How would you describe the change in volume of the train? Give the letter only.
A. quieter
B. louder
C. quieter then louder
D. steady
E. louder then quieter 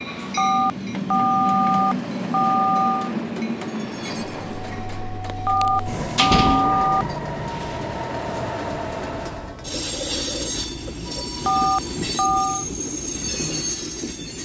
D.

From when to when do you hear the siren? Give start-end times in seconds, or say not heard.
not heard.